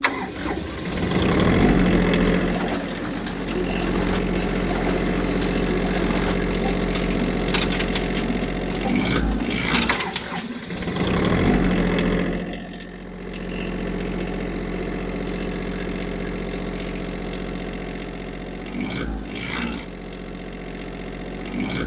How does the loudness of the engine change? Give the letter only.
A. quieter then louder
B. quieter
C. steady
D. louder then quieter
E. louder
B.